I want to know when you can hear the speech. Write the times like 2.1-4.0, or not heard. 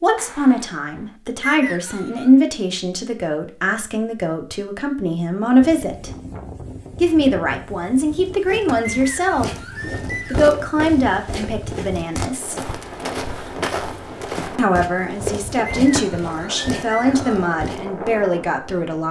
0.0-6.1, 7.0-9.5, 10.3-12.6, 14.6-19.0.